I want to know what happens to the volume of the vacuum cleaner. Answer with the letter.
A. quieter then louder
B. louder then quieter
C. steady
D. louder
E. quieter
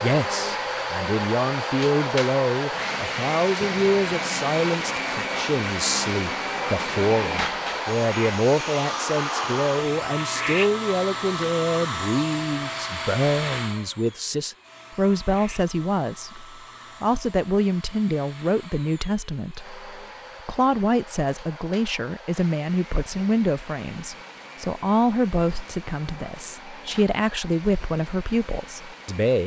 E.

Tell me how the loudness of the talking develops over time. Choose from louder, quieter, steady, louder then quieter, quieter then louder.
steady.